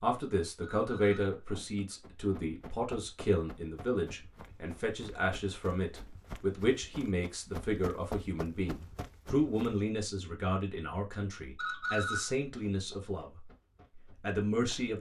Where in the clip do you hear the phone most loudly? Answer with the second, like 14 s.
12 s.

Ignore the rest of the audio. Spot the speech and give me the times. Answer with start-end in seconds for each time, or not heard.
0.0-13.4, 14.2-14.9.